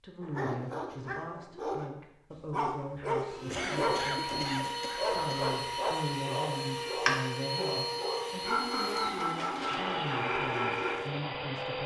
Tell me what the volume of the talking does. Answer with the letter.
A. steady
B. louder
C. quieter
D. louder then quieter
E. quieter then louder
A.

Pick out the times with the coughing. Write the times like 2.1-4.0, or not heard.
3.3-5.5.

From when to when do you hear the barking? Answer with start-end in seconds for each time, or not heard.
0.2-11.1.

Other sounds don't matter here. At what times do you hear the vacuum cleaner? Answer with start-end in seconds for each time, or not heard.
3.2-11.8.